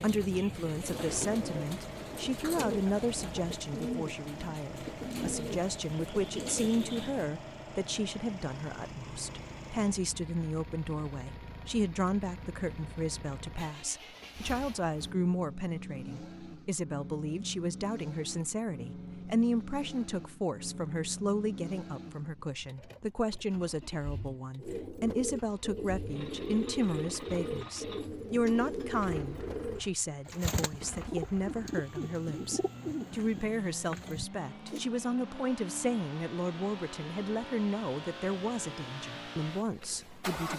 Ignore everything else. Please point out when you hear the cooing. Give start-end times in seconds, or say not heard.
0.0-7.3, 24.6-34.9.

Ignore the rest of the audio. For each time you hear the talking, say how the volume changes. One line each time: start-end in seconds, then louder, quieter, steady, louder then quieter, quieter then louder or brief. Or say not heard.
0.0-40.5 steady.